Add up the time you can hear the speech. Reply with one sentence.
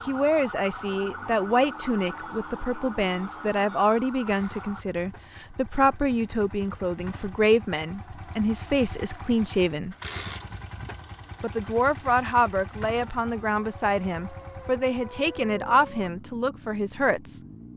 You can hear the speech for 16 seconds altogether.